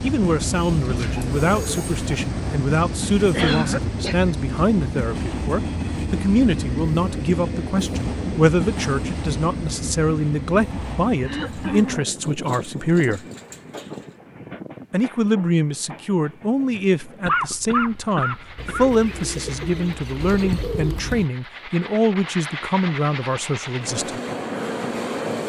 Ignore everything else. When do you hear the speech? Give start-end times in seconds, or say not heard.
0.0-13.2, 14.9-24.2.